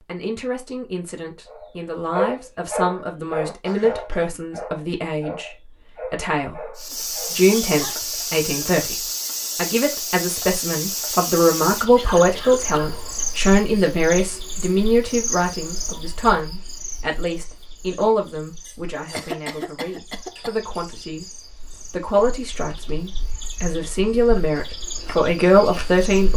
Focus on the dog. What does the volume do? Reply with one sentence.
The loudness of the dog goes down.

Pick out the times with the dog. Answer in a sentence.
You can hear the dog from 1.5 to 8.1 s.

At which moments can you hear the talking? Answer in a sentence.
The talking can be heard from 0.0 to 21.3 s and from 21.9 to 26.3 s.